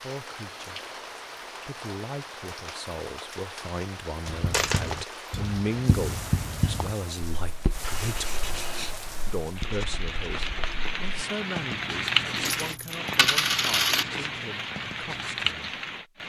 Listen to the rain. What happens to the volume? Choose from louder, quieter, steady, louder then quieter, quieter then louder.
louder.